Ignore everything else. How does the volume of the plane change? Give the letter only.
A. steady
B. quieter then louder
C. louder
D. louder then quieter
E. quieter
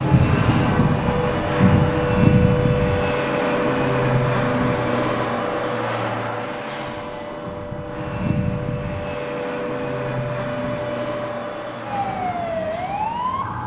E.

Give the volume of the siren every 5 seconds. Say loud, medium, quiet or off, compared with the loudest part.
loud, medium, loud.